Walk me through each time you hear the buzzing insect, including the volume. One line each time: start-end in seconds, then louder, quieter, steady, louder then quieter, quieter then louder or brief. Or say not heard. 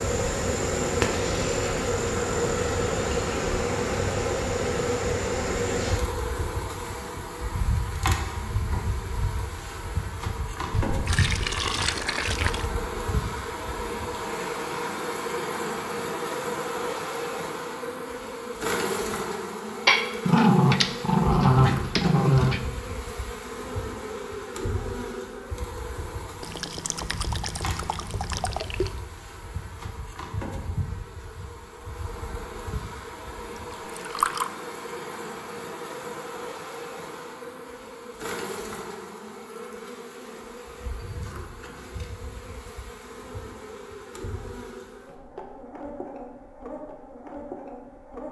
0.0-48.2 quieter.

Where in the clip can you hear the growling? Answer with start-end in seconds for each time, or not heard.
19.9-22.6.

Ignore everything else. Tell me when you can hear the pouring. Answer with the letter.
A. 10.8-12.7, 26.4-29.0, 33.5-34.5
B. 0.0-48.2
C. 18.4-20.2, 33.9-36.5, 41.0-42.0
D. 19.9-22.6
A.